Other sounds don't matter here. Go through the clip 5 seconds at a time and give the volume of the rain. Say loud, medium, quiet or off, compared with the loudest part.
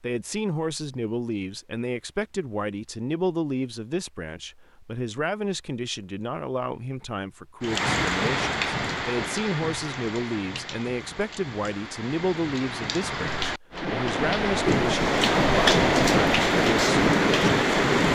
off, medium, medium, loud.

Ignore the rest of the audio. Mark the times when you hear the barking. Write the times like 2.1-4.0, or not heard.
not heard.